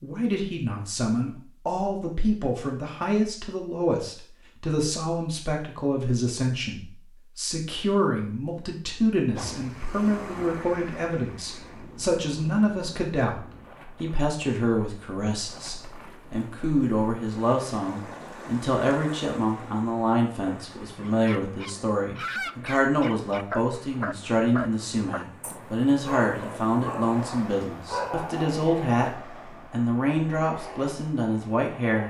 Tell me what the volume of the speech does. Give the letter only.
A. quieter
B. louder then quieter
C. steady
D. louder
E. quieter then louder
C.